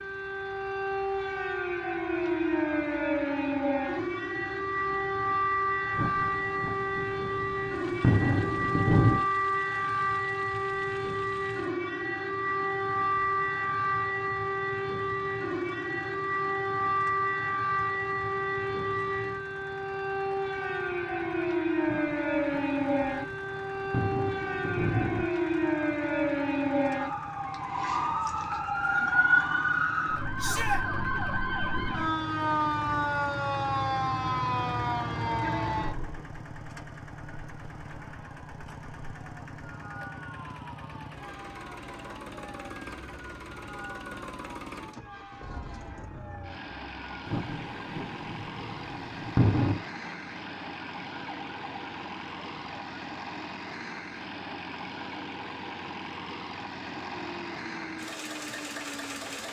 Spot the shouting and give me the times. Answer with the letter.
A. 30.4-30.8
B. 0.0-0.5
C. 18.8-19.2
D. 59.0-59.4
A.